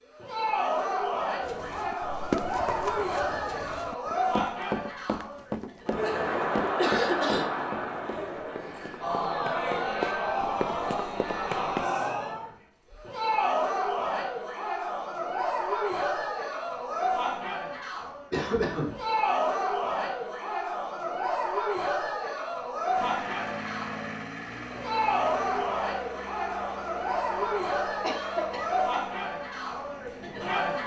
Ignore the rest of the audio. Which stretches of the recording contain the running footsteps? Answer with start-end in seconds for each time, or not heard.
1.4-11.9.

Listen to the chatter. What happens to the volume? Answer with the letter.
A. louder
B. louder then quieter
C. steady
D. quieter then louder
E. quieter
C.